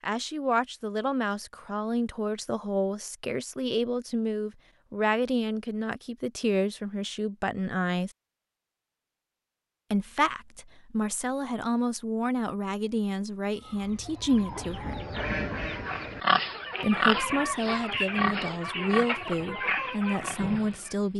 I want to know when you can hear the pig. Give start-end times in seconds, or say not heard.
15.8-21.1.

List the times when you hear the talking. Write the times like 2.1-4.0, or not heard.
0.0-8.1, 9.9-15.0, 16.8-21.1.